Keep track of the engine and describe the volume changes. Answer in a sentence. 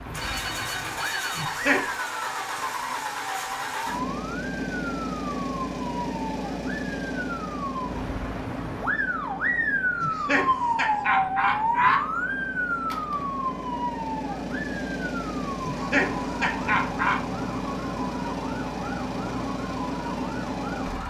The volume of the engine goes down, then up.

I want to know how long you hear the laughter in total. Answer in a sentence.
The laughter can be heard for 4 seconds in total.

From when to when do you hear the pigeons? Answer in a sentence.
You can't hear the pigeons here.